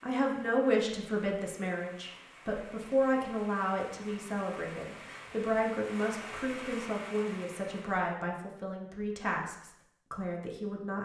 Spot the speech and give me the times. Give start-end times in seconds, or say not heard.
0.0-10.9.